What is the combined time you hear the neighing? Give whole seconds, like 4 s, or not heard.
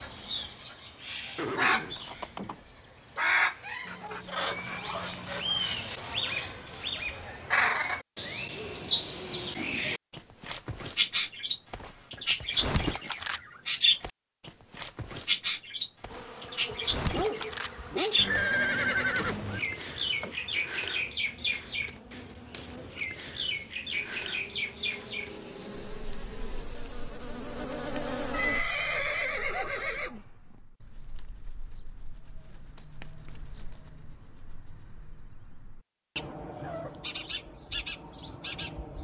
5 s.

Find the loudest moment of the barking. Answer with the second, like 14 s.
17 s.